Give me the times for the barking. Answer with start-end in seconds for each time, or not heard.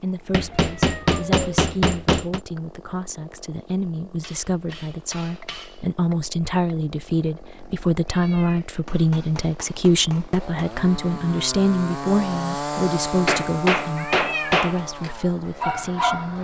14.8-16.4.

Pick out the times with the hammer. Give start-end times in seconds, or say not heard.
0.3-2.4, 4.2-5.8, 8.8-10.8, 13.1-14.8.